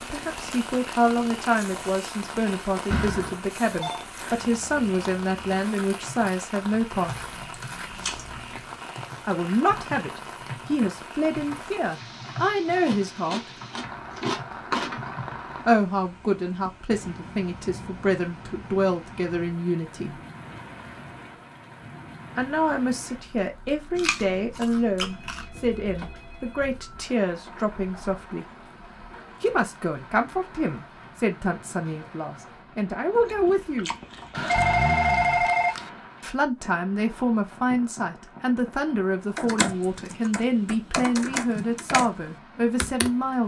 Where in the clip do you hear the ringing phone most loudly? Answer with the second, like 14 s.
35 s.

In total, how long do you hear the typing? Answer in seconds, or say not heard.
15 s.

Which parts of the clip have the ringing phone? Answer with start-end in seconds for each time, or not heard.
2.9-4.0, 25.1-27.1, 34.3-35.9.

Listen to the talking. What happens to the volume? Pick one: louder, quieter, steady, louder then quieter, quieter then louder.
steady.